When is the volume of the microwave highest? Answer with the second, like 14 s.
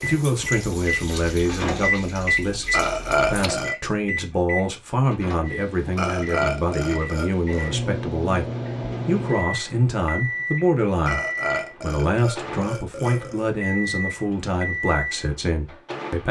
2 s.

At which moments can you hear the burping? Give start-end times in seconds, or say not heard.
2.7-3.8, 6.0-7.7, 11.1-13.5.